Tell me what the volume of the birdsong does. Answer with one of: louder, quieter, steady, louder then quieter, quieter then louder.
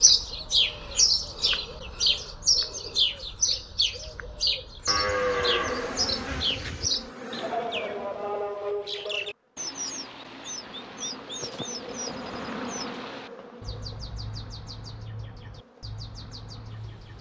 quieter.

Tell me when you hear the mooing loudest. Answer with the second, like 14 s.
5 s.